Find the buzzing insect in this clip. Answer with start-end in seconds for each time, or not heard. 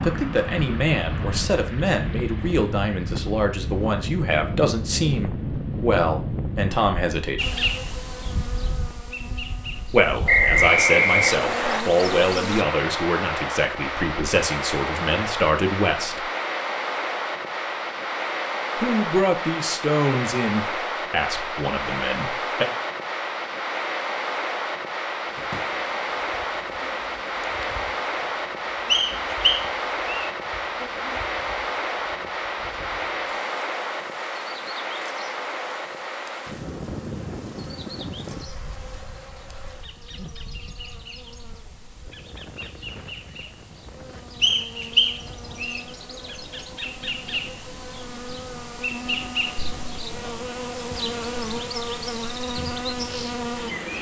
7.3-12.7, 25.2-53.9.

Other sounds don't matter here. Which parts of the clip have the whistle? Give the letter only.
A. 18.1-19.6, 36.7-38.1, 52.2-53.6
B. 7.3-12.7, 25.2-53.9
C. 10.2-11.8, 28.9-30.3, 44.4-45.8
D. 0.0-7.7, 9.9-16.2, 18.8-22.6
C.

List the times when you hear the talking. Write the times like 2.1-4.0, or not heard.
0.0-7.7, 9.9-16.2, 18.8-22.6.